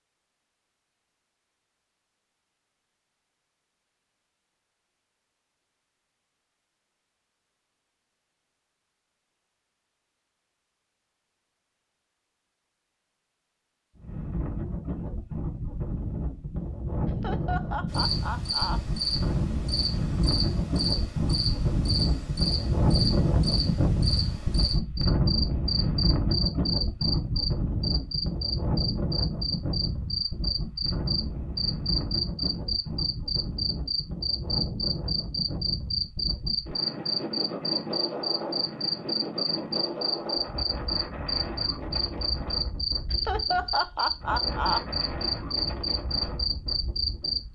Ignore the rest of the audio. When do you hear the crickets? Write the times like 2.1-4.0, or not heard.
17.9-47.5.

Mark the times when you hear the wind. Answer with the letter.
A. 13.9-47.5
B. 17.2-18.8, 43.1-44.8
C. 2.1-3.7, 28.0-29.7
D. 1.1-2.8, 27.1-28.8
A.